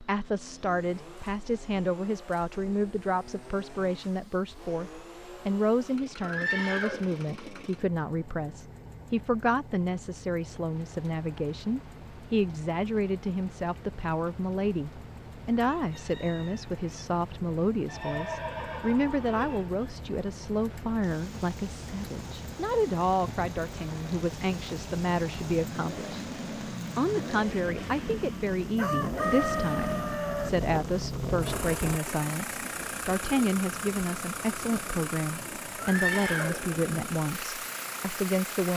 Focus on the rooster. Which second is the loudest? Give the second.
29 s.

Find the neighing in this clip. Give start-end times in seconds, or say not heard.
6.2-7.4, 17.9-19.9, 35.8-37.1.